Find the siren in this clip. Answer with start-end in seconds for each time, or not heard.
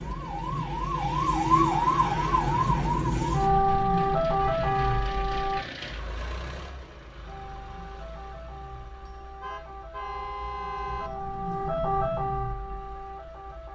0.0-5.6, 7.2-13.7.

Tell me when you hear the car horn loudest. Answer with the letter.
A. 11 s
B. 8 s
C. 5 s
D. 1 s
A.